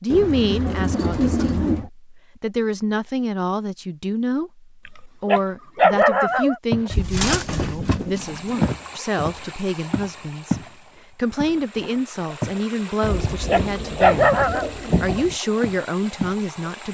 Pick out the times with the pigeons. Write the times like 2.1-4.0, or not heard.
0.1-1.9, 6.9-8.7, 13.0-15.3.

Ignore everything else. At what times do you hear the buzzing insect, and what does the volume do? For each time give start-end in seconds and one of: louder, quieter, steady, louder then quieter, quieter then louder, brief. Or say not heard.
not heard.